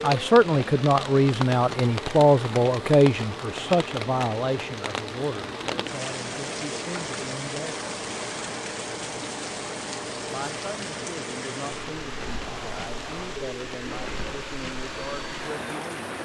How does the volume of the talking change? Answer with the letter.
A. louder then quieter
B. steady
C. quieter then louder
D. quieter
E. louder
D.